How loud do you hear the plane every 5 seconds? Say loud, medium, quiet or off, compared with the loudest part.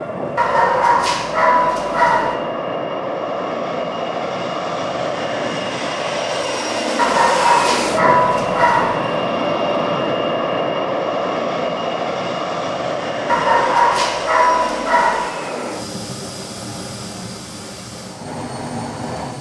loud, loud, loud, medium.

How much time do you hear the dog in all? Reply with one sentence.
The dog can be heard for 6 seconds in total.